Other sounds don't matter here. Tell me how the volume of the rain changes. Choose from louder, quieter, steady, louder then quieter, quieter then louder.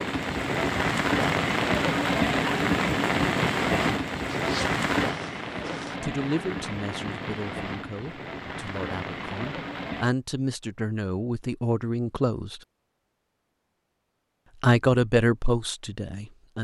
quieter.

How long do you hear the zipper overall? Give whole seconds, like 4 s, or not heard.
2 s.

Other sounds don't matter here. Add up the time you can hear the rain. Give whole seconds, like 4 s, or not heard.
10 s.